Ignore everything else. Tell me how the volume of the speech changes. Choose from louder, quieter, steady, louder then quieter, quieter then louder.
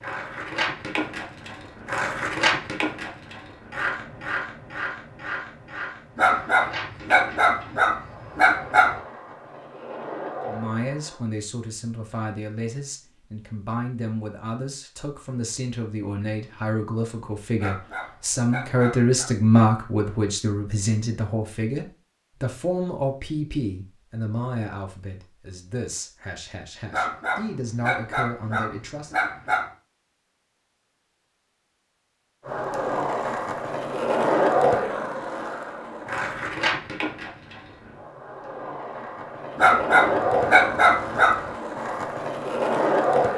louder then quieter.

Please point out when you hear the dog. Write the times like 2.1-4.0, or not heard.
6.2-8.9, 17.6-19.3, 26.9-29.7, 39.5-41.4.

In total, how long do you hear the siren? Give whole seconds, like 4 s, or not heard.
not heard.